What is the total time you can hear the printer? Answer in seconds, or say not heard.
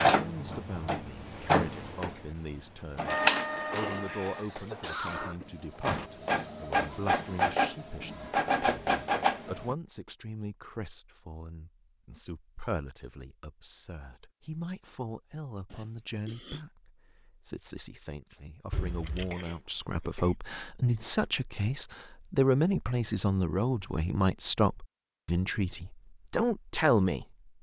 10 s.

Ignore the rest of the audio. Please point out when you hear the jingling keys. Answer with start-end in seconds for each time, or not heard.
4.0-6.1, 18.7-19.4.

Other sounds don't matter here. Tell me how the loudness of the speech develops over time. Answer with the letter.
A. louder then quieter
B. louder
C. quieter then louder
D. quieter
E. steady
B.